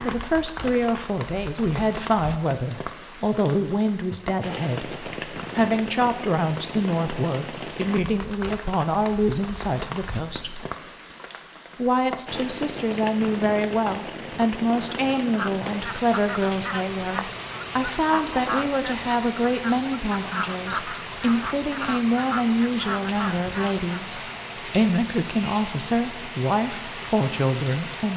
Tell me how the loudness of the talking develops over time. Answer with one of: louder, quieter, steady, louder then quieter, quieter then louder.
steady.